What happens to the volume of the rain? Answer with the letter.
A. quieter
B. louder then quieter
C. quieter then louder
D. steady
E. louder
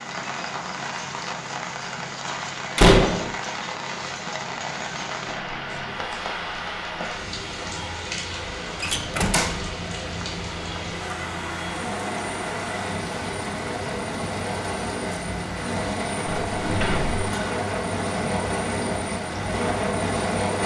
D.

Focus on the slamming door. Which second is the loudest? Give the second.
3 s.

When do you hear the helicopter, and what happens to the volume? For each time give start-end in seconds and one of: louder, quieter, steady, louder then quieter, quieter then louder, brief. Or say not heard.
0.0-20.6 louder.